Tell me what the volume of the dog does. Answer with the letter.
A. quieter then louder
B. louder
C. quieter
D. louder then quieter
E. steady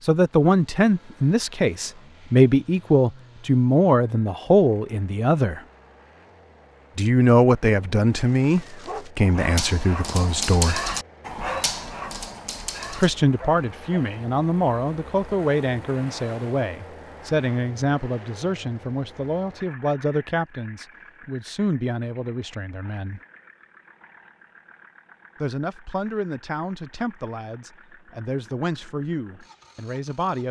D.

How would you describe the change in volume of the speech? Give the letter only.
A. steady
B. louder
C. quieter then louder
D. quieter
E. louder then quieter
D.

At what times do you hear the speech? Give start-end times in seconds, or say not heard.
0.1-5.6, 7.0-10.8, 12.9-23.2, 25.4-30.4.